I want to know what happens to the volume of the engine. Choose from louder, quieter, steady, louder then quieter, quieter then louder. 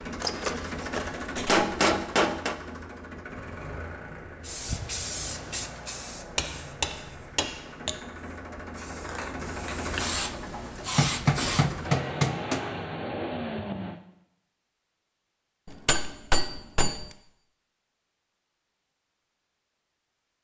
quieter then louder.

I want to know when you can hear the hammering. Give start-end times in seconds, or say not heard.
0.2-2.5, 6.3-8.0, 10.8-12.7, 15.7-17.1.